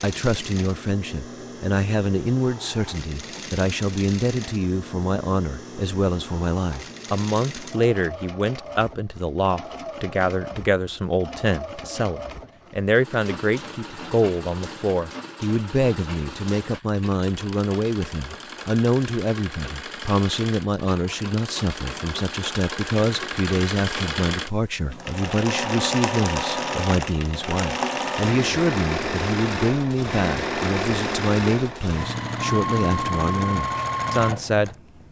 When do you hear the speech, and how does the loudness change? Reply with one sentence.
You can hear the speech from 0.0 to 35.0 s, at a steady volume.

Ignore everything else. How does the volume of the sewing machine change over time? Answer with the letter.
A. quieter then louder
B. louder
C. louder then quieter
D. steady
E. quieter
B.